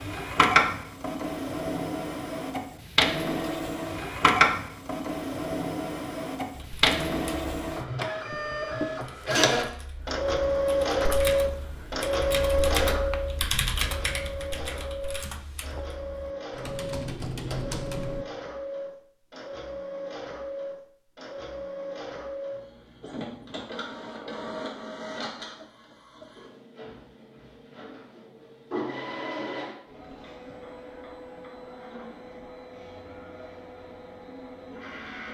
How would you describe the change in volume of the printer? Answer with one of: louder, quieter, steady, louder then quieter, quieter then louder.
quieter.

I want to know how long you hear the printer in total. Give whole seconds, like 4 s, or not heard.
35 s.